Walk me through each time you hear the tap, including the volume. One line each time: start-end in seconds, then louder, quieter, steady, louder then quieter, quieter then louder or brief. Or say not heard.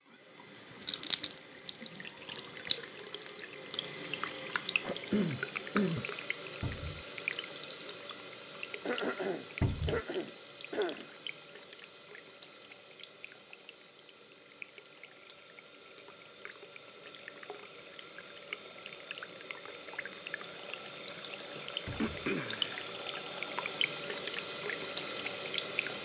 0.1-26.0 quieter then louder.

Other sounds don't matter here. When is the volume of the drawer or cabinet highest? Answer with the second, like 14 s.
10 s.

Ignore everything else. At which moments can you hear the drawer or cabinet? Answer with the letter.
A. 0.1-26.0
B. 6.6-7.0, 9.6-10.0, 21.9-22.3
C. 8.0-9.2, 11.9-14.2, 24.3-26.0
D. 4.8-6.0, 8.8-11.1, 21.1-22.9
B.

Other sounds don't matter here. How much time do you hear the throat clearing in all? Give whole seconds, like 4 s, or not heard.
5 s.